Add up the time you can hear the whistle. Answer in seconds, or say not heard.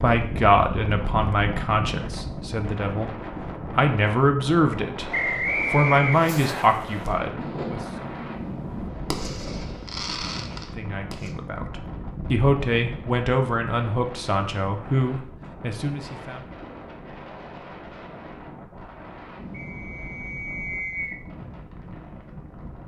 3 s.